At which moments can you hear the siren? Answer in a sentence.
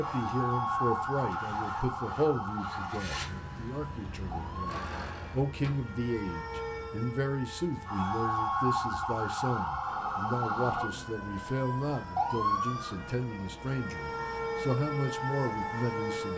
The siren can be heard from 0.0 to 16.3 s.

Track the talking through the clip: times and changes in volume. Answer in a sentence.
The talking can be heard from 0.0 to 16.3 s, at a steady volume.